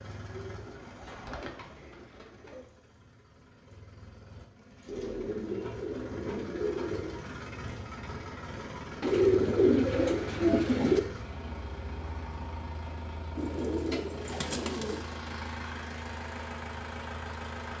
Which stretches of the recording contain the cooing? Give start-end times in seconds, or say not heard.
0.2-2.6, 4.8-7.2, 9.0-11.0, 13.3-15.1.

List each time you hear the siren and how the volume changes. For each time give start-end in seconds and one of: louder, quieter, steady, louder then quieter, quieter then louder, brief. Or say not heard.
not heard.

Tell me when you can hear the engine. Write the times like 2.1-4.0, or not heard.
0.0-17.7.